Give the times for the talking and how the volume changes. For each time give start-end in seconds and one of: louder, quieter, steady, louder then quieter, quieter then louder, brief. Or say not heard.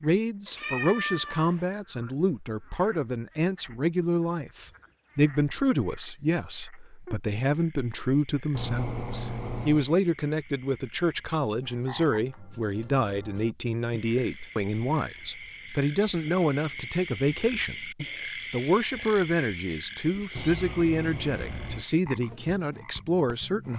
0.0-23.7 steady.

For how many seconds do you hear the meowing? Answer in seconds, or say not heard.
4 s.